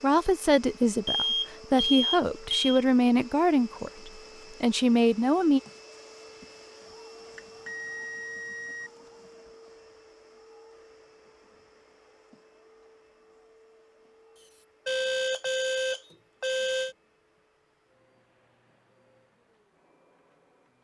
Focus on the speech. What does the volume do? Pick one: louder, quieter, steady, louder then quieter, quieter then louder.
steady.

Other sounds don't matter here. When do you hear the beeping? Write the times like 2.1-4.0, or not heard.
1.1-2.9, 7.3-8.9, 14.8-16.9.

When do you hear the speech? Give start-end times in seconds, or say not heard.
0.0-5.6.